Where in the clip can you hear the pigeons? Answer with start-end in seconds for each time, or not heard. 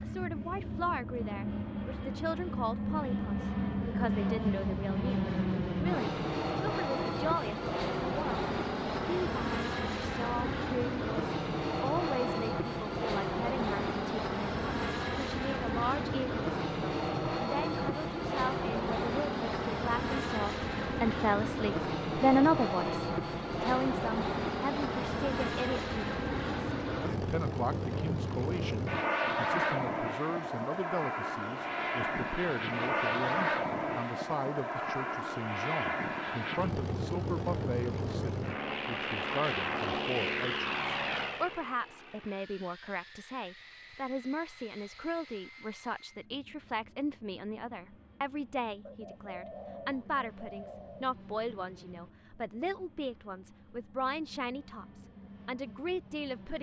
48.9-51.0.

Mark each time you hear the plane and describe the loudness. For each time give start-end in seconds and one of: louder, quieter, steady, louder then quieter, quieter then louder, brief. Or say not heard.
0.0-56.5 quieter.